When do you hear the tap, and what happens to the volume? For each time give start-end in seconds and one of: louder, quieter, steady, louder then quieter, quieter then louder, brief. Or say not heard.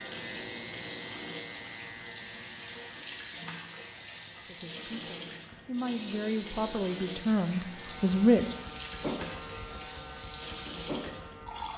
0.0-11.7 steady.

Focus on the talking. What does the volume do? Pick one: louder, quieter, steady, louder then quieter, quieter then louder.
louder.